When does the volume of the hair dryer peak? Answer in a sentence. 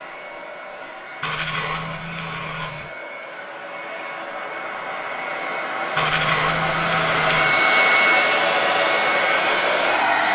The loudest moment of the hair dryer is at 8 seconds.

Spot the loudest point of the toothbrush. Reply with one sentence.
The loudest moment of the toothbrush is at 6 seconds.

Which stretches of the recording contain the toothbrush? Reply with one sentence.
The toothbrush can be heard from 1.2 to 2.9 s and from 6.0 to 7.6 s.